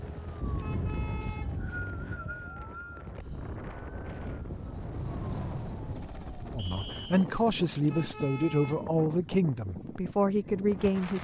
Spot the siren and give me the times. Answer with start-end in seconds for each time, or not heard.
0.0-6.7.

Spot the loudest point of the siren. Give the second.
1 s.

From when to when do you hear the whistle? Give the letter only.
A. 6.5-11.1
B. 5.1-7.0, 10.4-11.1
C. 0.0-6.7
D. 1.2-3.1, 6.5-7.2
D.